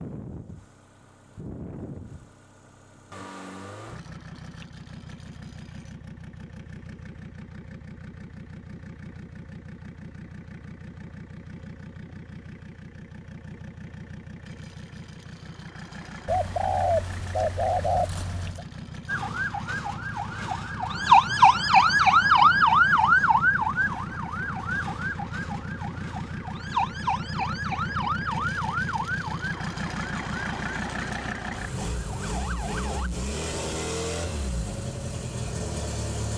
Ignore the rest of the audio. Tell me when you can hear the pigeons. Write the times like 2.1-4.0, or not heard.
16.2-18.6.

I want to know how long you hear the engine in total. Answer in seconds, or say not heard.
36 s.